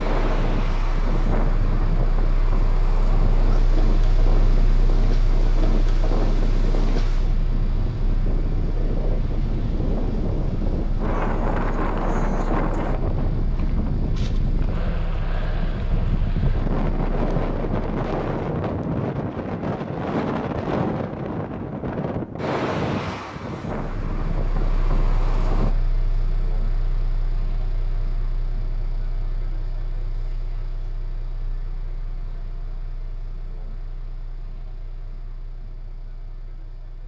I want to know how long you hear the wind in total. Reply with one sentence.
The wind can be heard for 26 seconds in total.